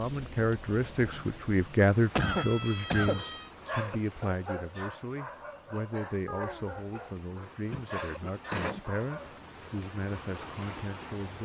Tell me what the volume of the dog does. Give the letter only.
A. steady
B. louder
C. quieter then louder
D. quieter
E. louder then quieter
C.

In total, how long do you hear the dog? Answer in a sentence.
The dog can be heard for 6 seconds in total.